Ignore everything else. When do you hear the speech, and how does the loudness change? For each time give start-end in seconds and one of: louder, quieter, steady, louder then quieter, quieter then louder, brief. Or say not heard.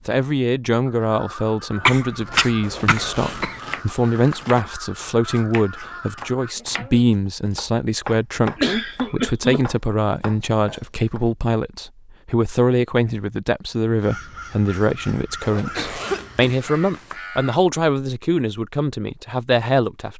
0.1-20.1 steady.